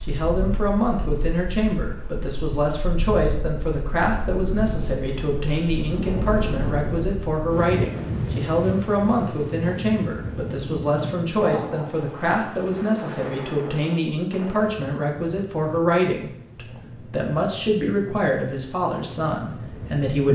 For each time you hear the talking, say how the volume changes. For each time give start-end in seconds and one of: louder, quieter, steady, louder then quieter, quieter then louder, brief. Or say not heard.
0.0-20.3 steady.